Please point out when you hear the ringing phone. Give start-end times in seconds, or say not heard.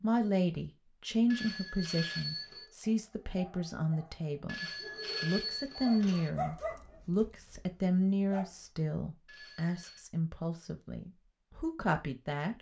1.2-2.7, 4.5-6.3, 9.2-10.0.